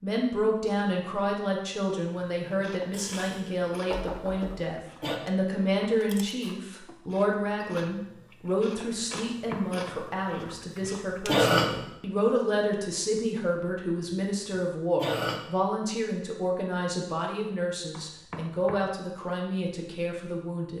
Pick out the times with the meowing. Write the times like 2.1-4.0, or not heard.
not heard.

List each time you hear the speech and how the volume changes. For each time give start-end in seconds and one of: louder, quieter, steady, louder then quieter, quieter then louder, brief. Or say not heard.
0.0-20.7 steady.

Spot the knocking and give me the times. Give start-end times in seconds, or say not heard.
2.9-4.7, 9.1-9.9, 17.9-18.8.